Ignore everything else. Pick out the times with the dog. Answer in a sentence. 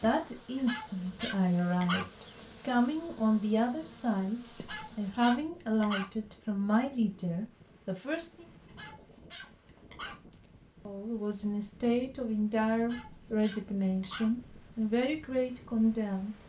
You can hear the dog from 0.6 to 2.2 s, from 4.6 to 6.3 s, from 8.7 to 10.4 s and from 12.8 to 14.5 s.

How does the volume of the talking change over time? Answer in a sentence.
The loudness of the talking stays about the same.